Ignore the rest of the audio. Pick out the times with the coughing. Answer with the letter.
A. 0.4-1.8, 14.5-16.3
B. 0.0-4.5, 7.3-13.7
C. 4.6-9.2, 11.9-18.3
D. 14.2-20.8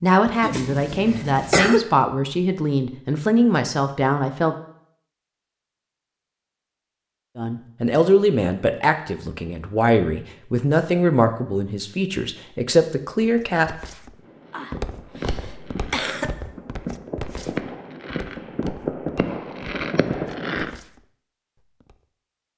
A.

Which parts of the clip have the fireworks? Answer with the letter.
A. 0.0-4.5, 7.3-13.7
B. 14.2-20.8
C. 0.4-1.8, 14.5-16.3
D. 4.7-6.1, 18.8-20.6
B.